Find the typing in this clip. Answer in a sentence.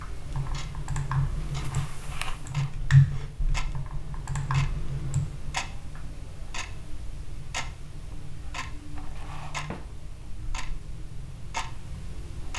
The typing can be heard from 0.2 to 5.8 s.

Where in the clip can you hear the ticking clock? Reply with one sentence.
The ticking clock can be heard from 0.0 to 12.5 s.